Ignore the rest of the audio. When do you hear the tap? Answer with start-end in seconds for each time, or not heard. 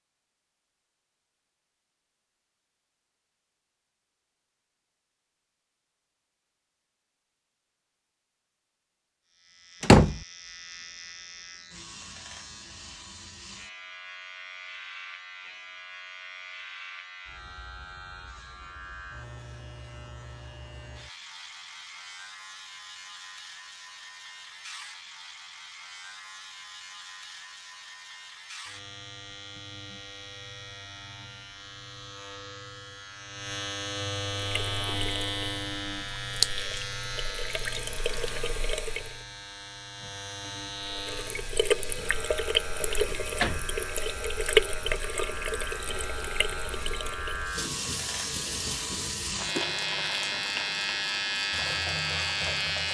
34.3-39.2, 40.8-52.8.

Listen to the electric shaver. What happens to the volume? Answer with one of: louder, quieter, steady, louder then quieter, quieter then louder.
louder.